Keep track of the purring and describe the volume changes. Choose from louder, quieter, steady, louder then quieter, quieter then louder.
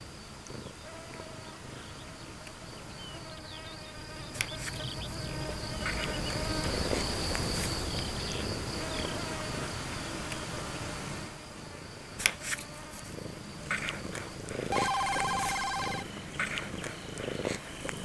louder.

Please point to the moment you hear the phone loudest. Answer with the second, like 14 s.
15 s.